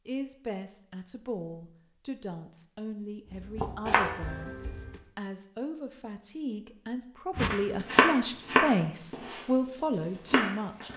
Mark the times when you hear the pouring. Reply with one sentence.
The pouring can't be heard in this clip.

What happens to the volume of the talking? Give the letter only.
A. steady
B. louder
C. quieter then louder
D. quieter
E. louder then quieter
B.